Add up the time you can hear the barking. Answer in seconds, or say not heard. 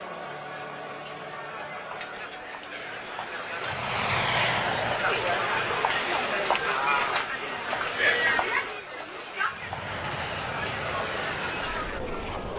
not heard.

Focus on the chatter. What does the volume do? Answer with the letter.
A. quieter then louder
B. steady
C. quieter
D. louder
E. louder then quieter
E.